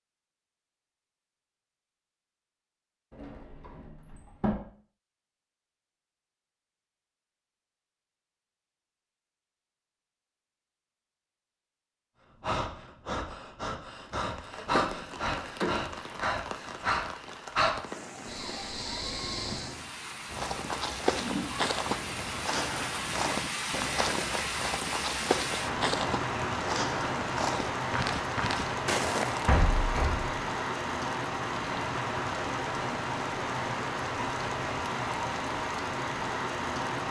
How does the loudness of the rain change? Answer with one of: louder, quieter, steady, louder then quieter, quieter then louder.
louder.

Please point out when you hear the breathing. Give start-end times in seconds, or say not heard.
12.4-19.8.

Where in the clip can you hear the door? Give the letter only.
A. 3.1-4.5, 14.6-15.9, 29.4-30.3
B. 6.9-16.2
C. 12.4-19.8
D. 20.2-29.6
A.